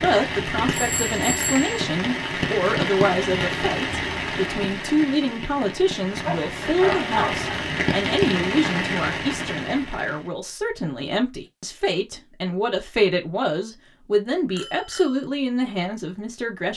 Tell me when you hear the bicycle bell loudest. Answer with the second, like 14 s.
1 s.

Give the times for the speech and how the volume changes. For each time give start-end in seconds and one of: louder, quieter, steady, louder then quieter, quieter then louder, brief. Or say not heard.
0.0-16.7 steady.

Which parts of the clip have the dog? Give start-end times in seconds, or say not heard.
6.2-7.5.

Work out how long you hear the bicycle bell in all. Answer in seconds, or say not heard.
2 s.